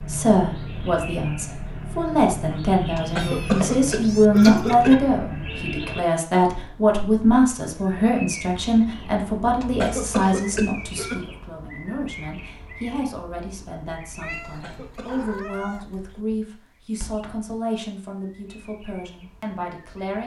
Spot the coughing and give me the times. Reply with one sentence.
You can hear the coughing from 3.0 to 5.0 s, from 9.6 to 11.2 s and from 14.4 to 15.3 s.